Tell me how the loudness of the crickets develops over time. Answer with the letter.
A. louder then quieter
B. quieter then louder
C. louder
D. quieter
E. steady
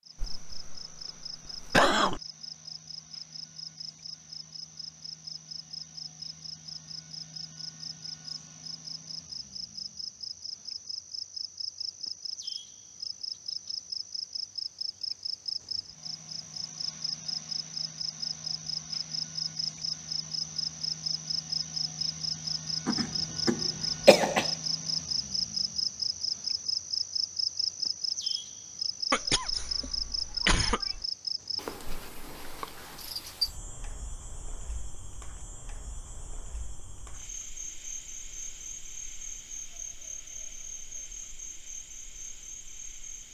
A.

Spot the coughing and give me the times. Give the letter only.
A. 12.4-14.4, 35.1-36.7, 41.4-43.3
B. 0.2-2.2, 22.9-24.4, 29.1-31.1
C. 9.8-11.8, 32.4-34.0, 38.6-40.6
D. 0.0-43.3
B.